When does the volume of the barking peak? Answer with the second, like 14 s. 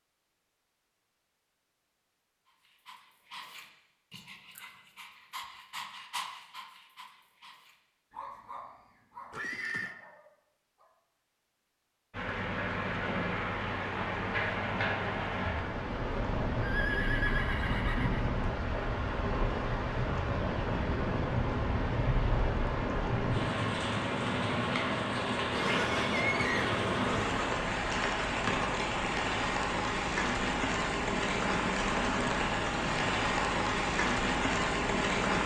6 s.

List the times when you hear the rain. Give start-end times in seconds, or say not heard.
12.1-35.4.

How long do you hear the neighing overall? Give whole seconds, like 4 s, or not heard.
4 s.